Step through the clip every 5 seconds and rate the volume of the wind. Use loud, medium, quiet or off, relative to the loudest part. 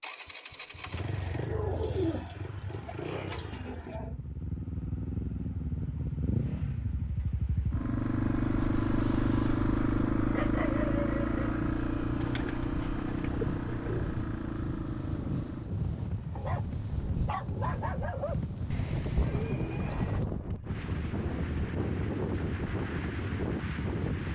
off, off, medium, loud, loud.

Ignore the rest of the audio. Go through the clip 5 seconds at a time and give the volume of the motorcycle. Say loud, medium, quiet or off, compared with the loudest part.
medium, loud, loud, medium, medium.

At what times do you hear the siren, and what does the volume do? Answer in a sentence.
You can't hear the siren here.